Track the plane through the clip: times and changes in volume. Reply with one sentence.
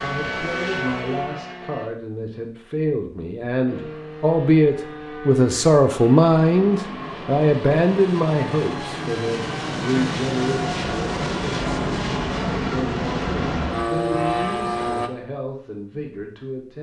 The plane can be heard briefly from 0.0 to 1.9 s; and from 3.6 to 15.1 s, getting louder.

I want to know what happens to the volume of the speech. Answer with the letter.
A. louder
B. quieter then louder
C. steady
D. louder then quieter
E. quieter
D.